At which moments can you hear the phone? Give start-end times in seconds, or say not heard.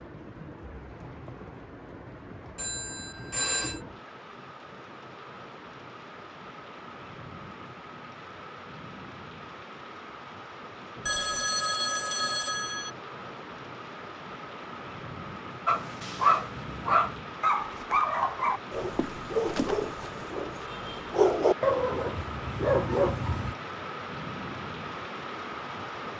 2.5-3.8, 11.1-12.9, 18.8-19.8.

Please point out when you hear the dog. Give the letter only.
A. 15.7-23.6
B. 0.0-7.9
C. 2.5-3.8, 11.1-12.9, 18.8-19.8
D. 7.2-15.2
A.